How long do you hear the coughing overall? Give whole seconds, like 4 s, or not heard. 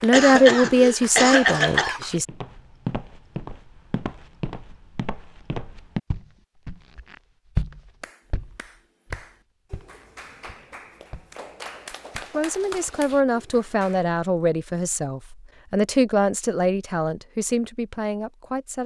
2 s.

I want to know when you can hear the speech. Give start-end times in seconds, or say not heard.
0.0-2.2, 12.2-18.8.